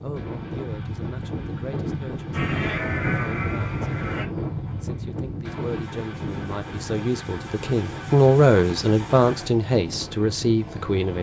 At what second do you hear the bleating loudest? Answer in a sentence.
The loudest moment of the bleating is at 3 seconds.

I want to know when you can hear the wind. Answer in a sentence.
The wind can be heard from 0.0 to 11.1 s.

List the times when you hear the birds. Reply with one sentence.
The birds can't be heard in this clip.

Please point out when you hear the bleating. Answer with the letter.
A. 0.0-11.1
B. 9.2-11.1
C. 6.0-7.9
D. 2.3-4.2
D.